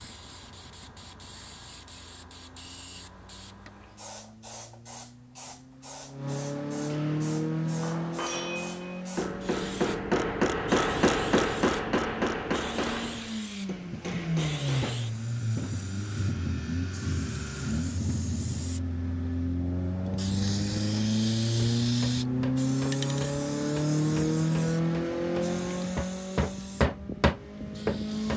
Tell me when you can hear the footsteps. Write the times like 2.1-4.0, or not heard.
not heard.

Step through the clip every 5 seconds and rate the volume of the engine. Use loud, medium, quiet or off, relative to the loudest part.
quiet, medium, medium, medium, loud, medium.